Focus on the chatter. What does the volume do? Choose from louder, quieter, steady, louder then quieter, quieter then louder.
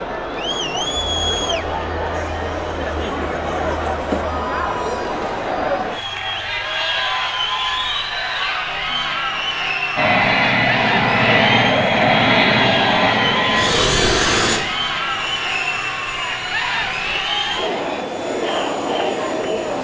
steady.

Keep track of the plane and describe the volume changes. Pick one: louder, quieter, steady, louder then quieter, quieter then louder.
quieter.